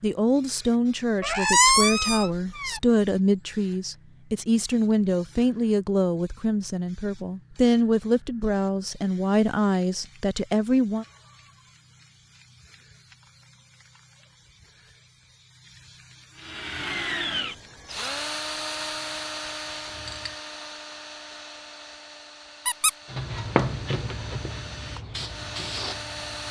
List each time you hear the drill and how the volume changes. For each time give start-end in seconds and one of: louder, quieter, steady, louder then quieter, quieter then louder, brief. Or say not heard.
16.4-26.4 quieter then louder.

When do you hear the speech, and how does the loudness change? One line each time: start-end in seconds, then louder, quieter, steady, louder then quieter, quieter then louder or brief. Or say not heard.
0.0-11.1 steady.